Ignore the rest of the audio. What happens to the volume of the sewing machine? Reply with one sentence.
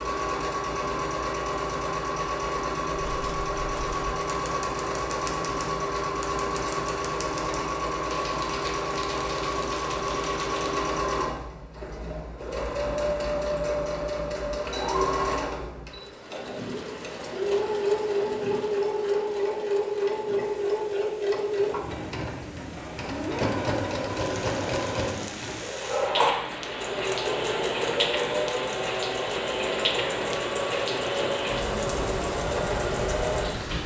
The volume of the sewing machine stays about the same.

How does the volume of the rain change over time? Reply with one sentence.
The volume of the rain goes down, then up.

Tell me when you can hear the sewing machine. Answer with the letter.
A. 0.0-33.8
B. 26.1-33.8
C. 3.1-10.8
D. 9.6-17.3
A.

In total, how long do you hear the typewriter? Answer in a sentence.
You can hear the typewriter for 8 seconds altogether.